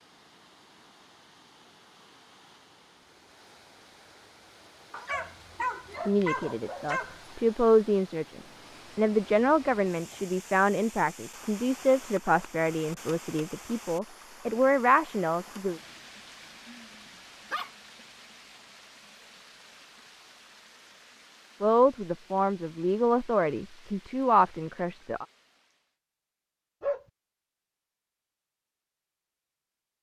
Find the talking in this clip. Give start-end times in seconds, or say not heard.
6.0-15.8, 21.6-25.2.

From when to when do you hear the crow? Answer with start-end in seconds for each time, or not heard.
not heard.